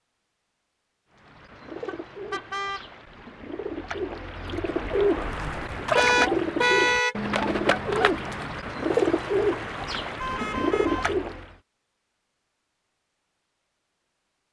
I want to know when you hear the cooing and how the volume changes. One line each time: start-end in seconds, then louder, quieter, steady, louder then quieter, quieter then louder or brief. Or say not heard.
1.1-11.5 louder.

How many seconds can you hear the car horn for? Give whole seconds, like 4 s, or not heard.
3 s.